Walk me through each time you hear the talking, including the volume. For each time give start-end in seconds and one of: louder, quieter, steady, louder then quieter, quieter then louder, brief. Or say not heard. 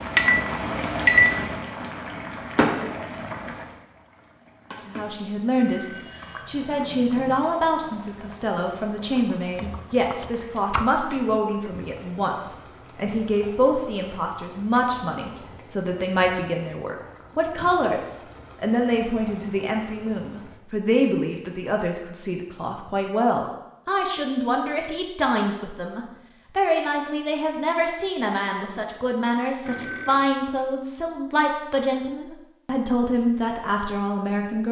4.8-34.6 steady.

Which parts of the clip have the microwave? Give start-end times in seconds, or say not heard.
0.0-1.6.